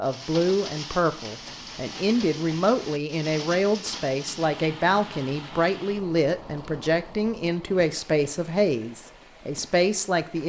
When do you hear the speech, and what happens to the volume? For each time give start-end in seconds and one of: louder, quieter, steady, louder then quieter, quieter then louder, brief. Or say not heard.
0.0-10.4 steady.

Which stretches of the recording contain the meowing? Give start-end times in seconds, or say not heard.
not heard.